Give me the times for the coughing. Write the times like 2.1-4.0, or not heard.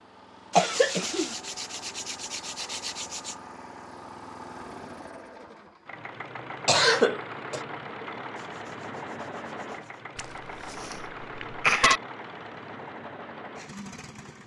0.5-1.4, 6.7-7.6, 10.2-12.0.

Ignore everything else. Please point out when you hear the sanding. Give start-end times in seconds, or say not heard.
0.7-3.4, 8.3-10.1.